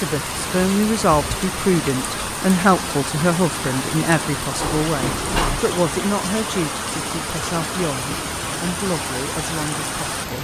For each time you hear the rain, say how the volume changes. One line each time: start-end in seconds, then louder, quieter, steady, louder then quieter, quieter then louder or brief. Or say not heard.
0.0-10.3 steady.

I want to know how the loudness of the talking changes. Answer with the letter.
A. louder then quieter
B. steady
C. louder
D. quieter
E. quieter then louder
D.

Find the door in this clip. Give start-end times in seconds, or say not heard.
4.6-5.7.